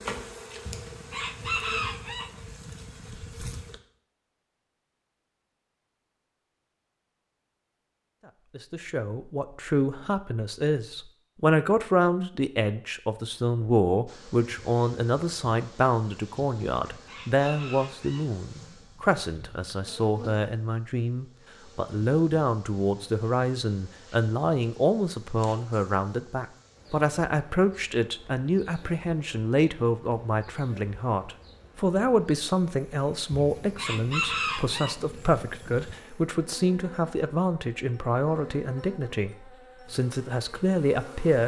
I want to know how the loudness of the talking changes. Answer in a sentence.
The loudness of the talking stays about the same.